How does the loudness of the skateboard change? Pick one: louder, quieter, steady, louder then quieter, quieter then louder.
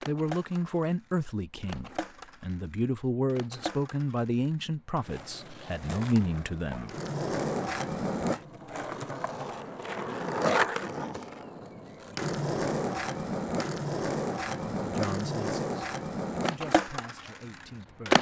louder.